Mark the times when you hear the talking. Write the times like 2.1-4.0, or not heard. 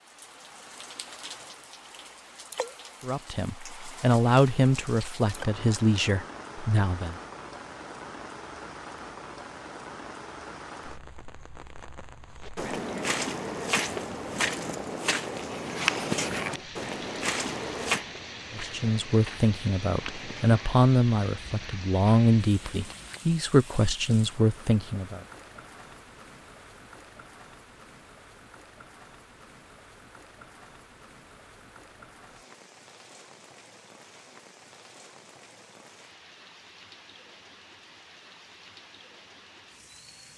3.0-7.2, 18.6-25.2.